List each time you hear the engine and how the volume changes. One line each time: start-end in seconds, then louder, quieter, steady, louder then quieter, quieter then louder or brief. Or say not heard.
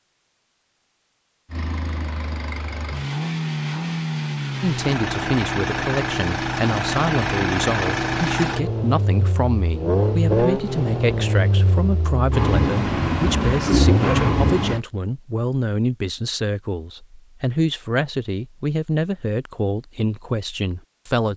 1.5-14.8 louder.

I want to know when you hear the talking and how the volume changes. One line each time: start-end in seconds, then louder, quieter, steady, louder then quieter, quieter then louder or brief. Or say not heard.
4.6-21.3 steady.